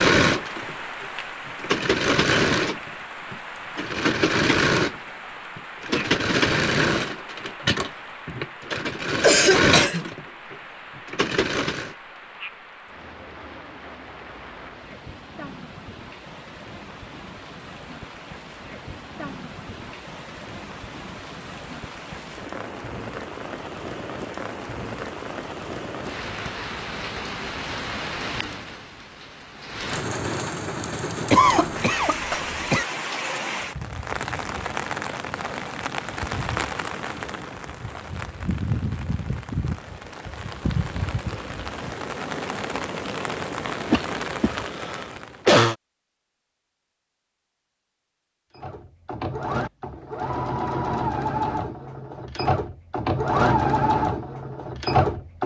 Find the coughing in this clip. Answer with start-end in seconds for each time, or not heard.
9.2-10.1, 31.3-32.9, 43.9-45.8.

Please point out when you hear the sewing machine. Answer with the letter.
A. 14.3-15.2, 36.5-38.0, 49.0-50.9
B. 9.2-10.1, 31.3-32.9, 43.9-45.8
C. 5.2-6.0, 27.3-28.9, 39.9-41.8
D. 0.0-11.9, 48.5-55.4
D.